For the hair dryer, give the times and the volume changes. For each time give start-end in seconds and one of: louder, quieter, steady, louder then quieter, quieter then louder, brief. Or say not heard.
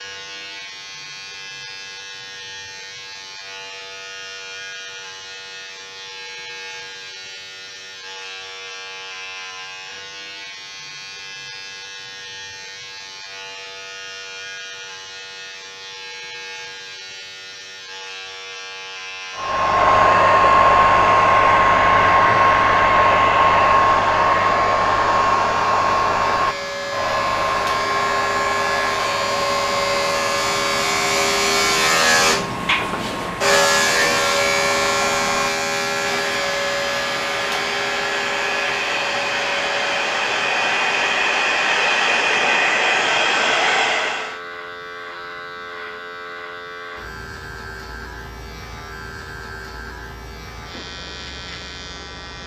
19.4-44.4 quieter then louder.